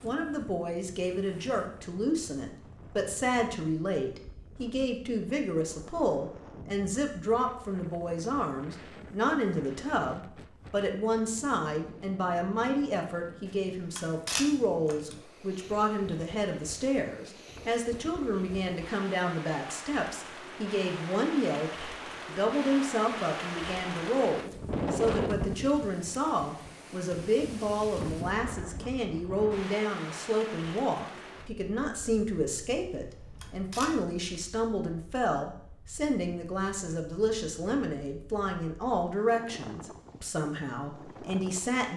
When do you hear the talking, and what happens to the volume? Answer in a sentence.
The talking can be heard from 0.0 to 41.9 s, at a steady volume.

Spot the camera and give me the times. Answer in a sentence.
You can hear the camera from 13.4 to 15.2 s and from 32.9 to 34.4 s.